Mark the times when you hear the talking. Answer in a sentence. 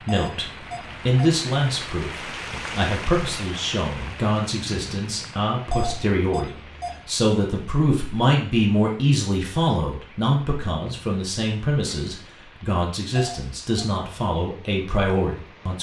You can hear the talking from 0.1 to 15.7 s.